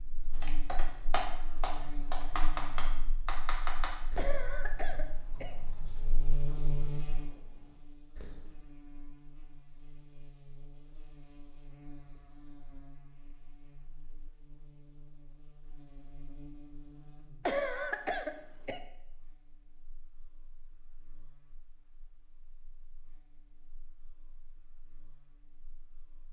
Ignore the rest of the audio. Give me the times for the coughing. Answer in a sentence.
You can hear the coughing from 4.2 to 5.6 s and from 17.4 to 18.8 s.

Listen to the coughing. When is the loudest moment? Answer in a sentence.
The loudest moment of the coughing is at 18 seconds.